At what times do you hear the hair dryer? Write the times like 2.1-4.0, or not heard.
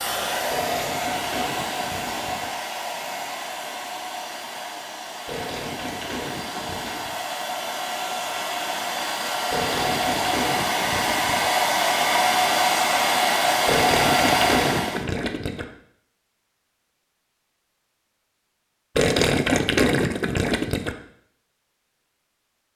0.0-15.1.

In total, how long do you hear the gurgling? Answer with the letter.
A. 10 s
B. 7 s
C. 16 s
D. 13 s
A.